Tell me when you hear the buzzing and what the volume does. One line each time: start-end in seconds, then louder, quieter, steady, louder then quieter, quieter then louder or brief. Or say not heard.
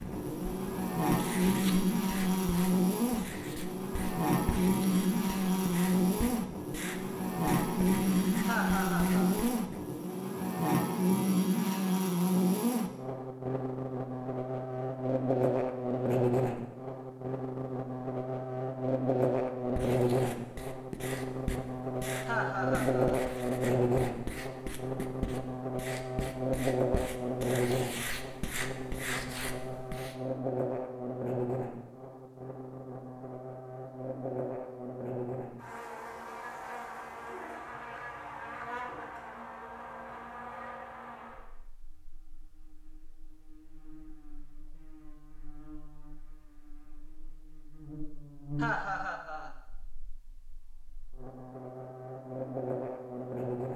0.0-53.7 quieter.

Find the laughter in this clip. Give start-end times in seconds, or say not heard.
8.4-9.4, 22.2-23.2, 48.6-49.5.